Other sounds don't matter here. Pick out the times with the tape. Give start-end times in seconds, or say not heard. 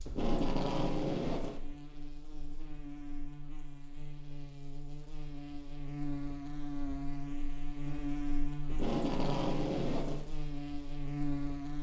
0.1-1.6, 8.7-10.2.